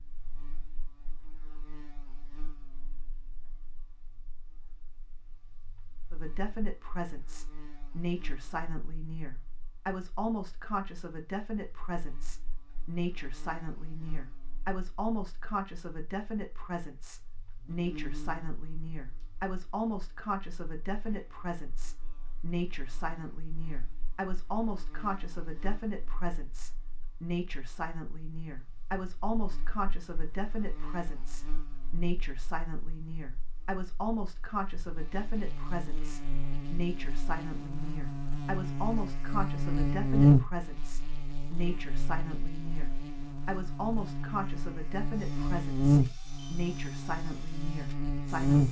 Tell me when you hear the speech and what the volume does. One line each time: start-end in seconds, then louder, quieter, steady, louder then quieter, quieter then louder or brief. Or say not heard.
6.1-48.6 steady.